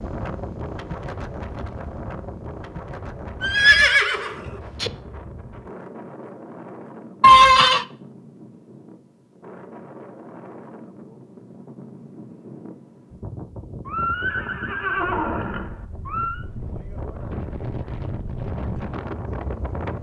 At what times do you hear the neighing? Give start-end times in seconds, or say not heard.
3.4-4.9, 7.2-7.8, 13.8-16.4.